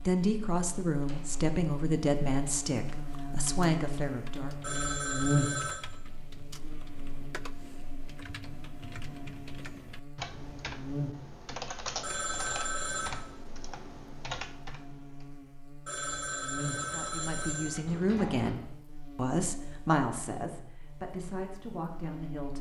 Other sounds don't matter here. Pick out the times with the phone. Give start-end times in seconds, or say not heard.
4.6-5.8, 12.0-13.2, 15.8-17.9.